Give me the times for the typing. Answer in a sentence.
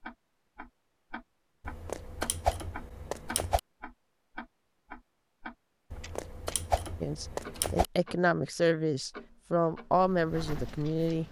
The typing can be heard from 1.6 to 3.6 s and from 5.9 to 7.8 s.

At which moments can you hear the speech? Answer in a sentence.
You can hear the speech from 7.0 to 11.2 s.